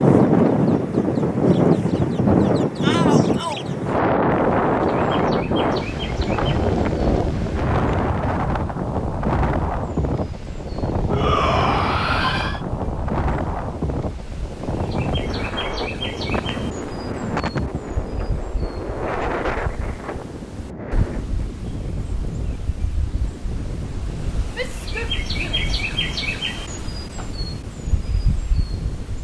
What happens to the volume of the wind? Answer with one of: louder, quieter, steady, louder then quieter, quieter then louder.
quieter.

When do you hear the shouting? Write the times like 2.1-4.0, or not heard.
2.8-3.6, 11.1-12.6, 24.5-25.7.